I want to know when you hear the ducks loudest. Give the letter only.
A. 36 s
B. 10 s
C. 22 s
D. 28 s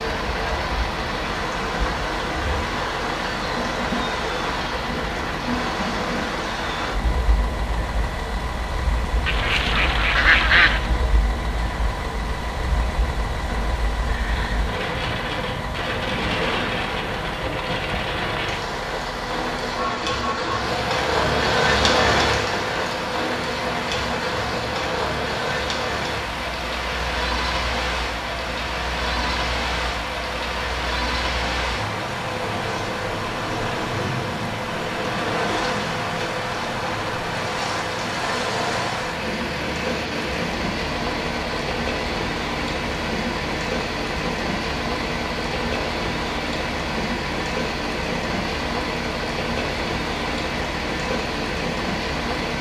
B.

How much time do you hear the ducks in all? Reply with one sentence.
You can hear the ducks for 2 seconds altogether.